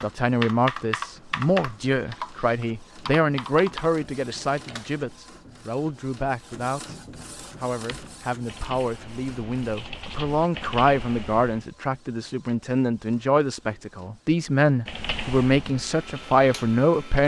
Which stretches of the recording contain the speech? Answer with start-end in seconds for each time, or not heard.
0.0-7.0, 7.6-17.2.